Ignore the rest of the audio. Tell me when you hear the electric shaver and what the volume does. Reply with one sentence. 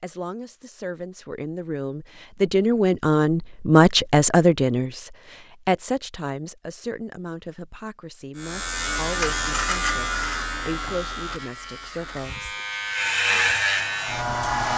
You can hear the electric shaver from 8.3 to 14.7 s, getting quieter then louder.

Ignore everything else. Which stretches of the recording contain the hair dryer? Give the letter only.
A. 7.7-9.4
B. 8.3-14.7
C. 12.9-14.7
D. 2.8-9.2
C.